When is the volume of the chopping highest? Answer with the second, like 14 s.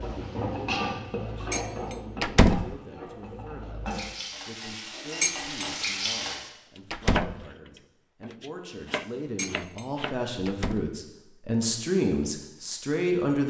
7 s.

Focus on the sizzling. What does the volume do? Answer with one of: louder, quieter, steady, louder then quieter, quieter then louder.
quieter then louder.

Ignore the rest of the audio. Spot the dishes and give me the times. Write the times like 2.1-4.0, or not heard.
1.5-2.0, 5.2-5.7, 9.3-9.8.